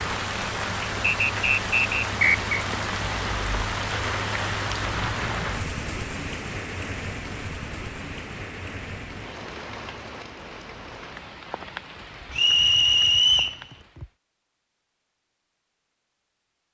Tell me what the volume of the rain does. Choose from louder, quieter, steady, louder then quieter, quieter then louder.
quieter.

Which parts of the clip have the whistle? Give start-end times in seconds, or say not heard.
1.2-2.6, 12.3-13.6.